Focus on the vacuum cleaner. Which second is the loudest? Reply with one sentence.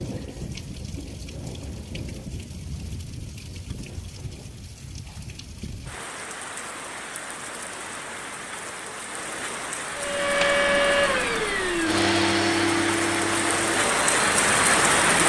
The loudest moment of the vacuum cleaner is at 11 seconds.